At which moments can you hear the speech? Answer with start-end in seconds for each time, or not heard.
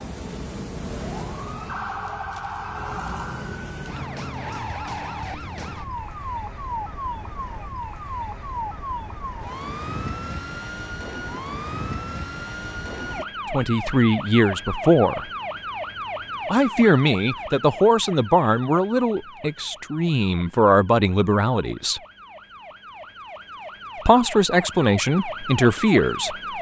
13.5-15.2, 16.5-22.0, 24.1-26.4.